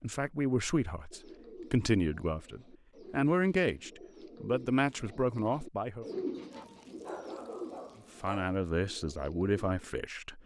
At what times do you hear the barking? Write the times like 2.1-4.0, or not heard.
6.5-8.6.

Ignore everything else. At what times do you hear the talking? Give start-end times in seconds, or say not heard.
0.0-6.0, 8.2-10.4.